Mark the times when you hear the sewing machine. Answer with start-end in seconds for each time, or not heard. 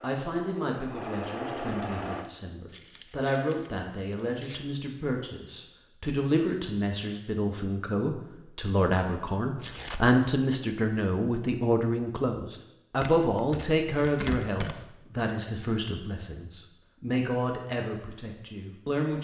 0.0-2.3.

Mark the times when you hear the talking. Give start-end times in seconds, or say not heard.
0.0-19.1.